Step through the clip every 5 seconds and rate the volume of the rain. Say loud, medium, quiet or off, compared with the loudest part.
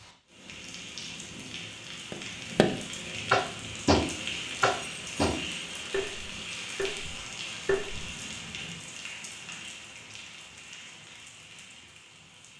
loud, loud, medium.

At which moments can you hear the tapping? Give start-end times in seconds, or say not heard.
2.1-8.1.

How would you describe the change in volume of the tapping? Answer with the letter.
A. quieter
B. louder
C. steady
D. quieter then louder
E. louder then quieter
A.